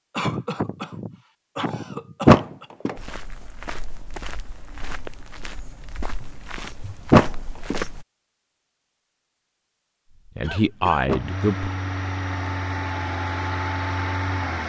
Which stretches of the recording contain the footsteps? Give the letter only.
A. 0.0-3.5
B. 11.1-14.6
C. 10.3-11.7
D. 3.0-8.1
D.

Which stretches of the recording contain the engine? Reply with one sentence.
The engine can be heard from 11.1 to 14.6 s.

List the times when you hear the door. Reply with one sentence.
The door can be heard from 2.2 to 3.0 s, from 7.1 to 7.8 s and from 11.1 to 11.8 s.